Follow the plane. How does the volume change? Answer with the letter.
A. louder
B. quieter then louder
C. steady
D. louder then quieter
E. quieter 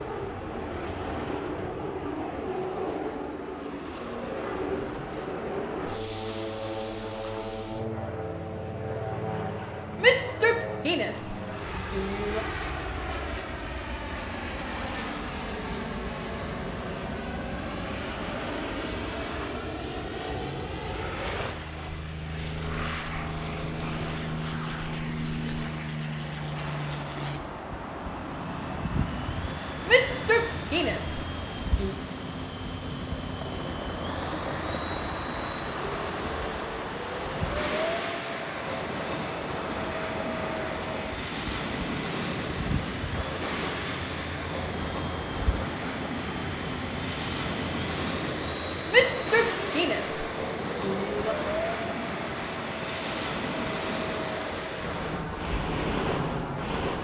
C.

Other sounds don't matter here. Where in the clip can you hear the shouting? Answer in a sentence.
You can hear the shouting from 10.0 to 12.4 s, from 29.9 to 31.9 s and from 48.9 to 51.4 s.